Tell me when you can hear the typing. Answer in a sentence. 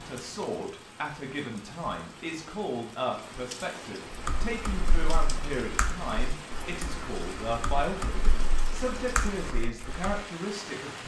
The typing can be heard from 4.1 to 10.2 s.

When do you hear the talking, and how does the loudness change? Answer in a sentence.
You can hear the talking from 0.0 to 11.0 s, at a steady volume.